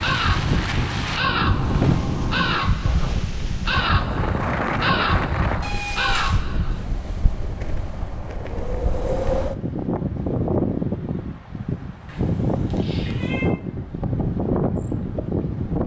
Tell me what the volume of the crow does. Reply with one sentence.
The volume of the crow stays about the same.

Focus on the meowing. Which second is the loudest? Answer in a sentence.
The loudest moment of the meowing is at 2 seconds.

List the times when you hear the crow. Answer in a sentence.
The crow can be heard from 0.0 to 6.8 s.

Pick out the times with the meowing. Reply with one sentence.
The meowing can be heard from 1.2 to 2.7 s, from 5.6 to 6.4 s and from 12.1 to 13.5 s.